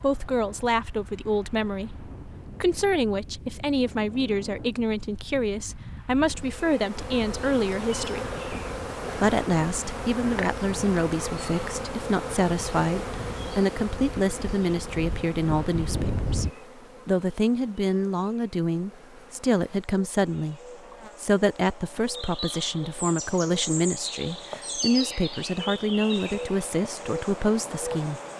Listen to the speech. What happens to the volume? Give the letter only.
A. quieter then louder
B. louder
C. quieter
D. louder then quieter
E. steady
E.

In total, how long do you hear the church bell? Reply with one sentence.
You can't hear the church bell here.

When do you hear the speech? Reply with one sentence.
You can hear the speech from 0.0 to 8.3 s, from 9.2 to 16.4 s, from 17.1 to 20.6 s and from 21.2 to 28.2 s.